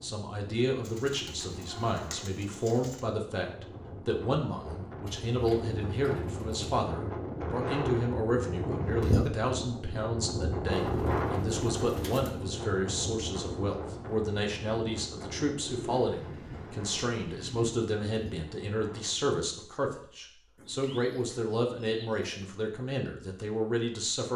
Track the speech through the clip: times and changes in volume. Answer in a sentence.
The speech can be heard from 0.0 to 24.3 s, at a steady volume.